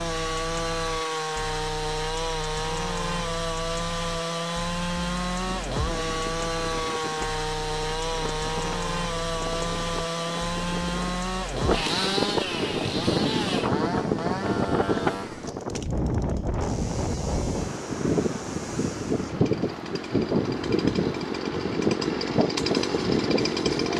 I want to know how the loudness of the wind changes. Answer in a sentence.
The loudness of the wind goes up.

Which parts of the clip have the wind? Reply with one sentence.
The wind can be heard from 5.5 to 23.9 s.